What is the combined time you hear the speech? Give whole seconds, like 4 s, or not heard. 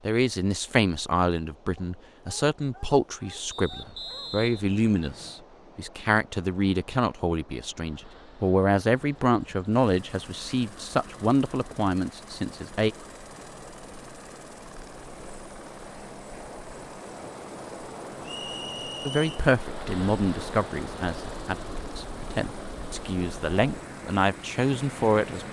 19 s.